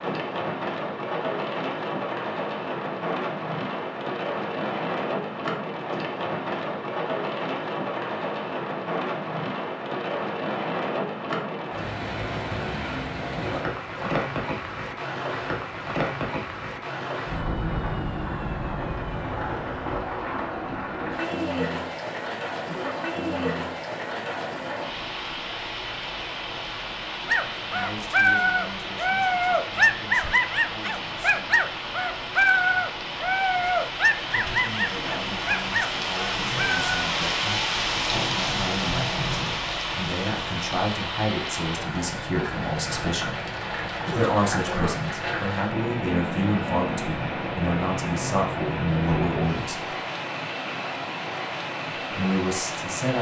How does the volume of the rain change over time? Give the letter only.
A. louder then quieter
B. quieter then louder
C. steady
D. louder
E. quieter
C.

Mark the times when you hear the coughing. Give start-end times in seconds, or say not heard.
13.3-14.2, 22.6-23.6, 44.0-45.0.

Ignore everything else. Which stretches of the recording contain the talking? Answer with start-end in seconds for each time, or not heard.
27.7-31.9, 34.3-43.4, 44.1-50.0, 52.0-53.1.